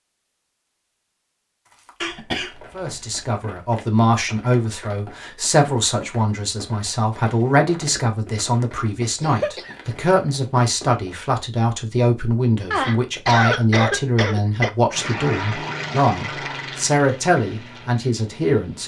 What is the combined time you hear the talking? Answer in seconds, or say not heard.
16 s.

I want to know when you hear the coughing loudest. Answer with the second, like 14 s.
13 s.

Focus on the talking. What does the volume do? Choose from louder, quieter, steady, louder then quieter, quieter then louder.
steady.